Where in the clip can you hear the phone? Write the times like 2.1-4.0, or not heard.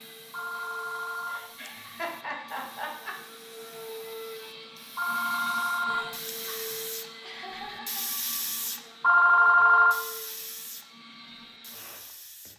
0.3-1.9, 5.0-6.8, 9.0-9.9.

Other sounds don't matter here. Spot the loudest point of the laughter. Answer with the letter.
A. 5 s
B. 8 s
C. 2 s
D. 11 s
C.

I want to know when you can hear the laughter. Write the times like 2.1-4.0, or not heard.
1.2-3.1, 7.2-8.1.